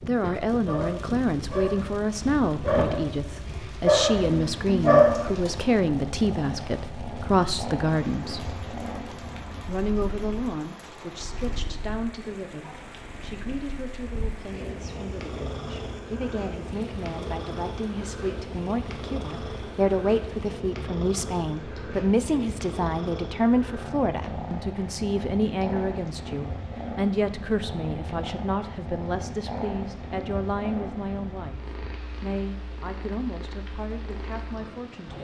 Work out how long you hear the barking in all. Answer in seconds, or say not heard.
5 s.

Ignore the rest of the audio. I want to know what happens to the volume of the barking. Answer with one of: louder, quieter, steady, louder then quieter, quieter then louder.
quieter then louder.